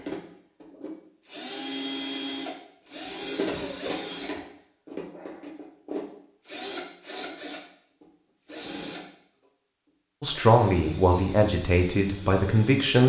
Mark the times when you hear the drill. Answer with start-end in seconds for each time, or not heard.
0.0-9.1, 10.2-13.0.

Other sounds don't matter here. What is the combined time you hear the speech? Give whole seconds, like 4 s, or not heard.
3 s.